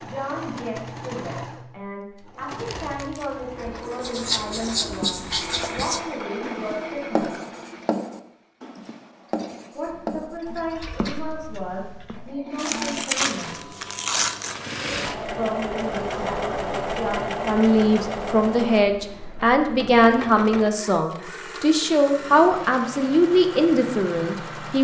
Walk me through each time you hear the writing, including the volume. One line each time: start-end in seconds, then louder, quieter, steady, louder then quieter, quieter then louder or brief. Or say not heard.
4.0-12.4 quieter.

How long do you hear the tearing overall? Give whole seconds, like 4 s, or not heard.
3 s.